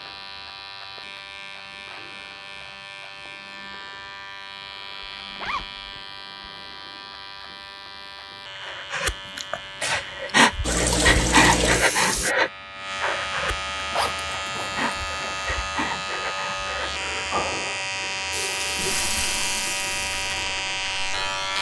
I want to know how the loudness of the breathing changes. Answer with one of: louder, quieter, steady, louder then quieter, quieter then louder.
quieter.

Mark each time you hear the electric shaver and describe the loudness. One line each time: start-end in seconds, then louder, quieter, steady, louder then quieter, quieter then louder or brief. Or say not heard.
0.0-21.5 louder.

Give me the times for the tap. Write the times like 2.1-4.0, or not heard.
10.6-12.3, 18.3-21.2.